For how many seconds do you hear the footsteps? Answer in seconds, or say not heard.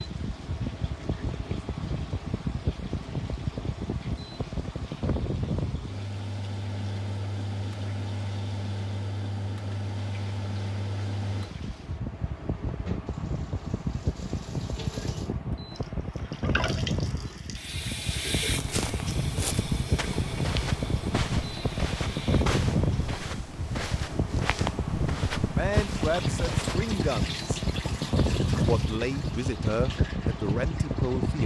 8 s.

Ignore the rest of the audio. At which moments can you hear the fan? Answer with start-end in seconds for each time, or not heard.
0.0-31.4.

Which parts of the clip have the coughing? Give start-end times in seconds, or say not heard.
not heard.